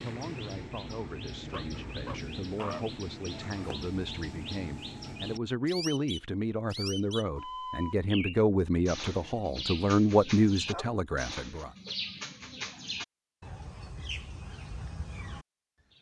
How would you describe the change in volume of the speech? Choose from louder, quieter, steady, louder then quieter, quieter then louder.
louder.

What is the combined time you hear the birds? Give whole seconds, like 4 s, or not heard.
16 s.